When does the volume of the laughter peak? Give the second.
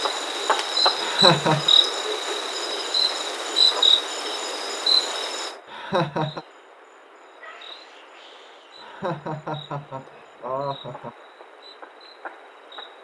1 s.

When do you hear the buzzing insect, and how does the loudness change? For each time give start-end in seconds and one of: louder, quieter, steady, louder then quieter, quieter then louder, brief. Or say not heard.
0.0-13.0 quieter.